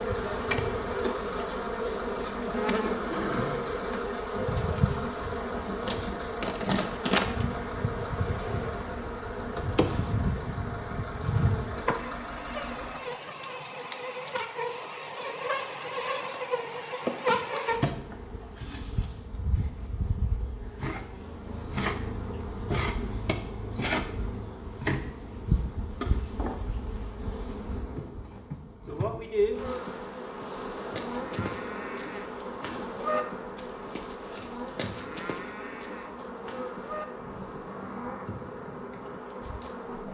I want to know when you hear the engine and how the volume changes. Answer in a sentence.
The engine can be heard from 0.0 to 13.0 s, at a steady volume.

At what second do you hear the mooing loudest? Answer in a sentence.
The volume of the mooing peaks at 33 seconds.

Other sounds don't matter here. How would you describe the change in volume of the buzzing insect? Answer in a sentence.
The loudness of the buzzing insect goes down.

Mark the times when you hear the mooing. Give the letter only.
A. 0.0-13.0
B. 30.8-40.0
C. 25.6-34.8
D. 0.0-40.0
B.